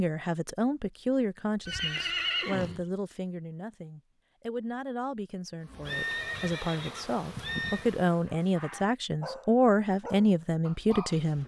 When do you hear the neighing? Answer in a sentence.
You can hear the neighing from 1.6 to 2.8 s and from 5.8 to 7.8 s.